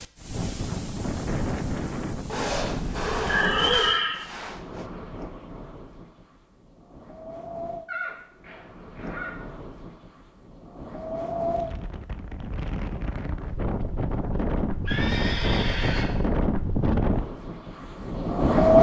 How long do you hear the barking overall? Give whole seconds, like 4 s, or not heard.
not heard.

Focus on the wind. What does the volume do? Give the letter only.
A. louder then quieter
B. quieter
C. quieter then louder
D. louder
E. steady
C.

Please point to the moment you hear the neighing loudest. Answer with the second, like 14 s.
4 s.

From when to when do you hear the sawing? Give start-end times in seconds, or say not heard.
2.2-4.8.